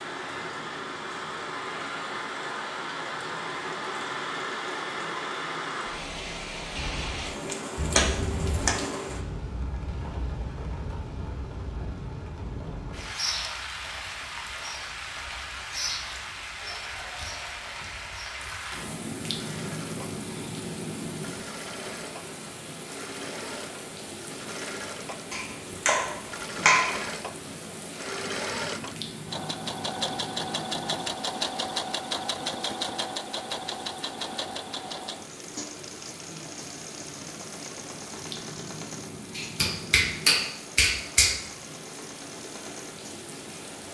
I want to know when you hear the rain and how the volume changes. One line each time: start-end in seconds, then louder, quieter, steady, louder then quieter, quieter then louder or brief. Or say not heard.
0.0-43.8 quieter.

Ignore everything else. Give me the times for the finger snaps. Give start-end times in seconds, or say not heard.
7.8-8.8, 25.3-27.0, 39.4-41.4.